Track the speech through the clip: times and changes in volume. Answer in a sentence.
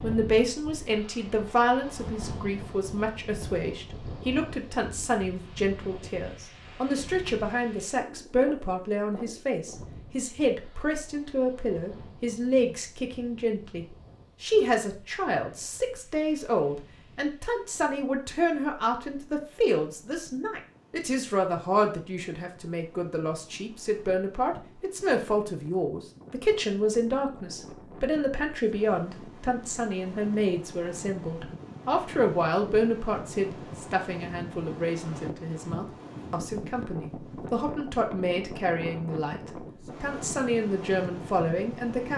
You can hear the speech from 0.0 to 39.4 s, at a steady volume; and briefly from 40.0 to 42.1 s.